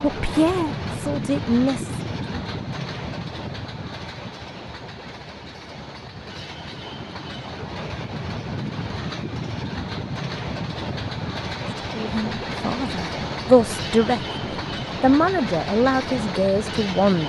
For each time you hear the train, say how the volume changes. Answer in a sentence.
The train can be heard from 0.0 to 17.2 s, getting quieter then louder.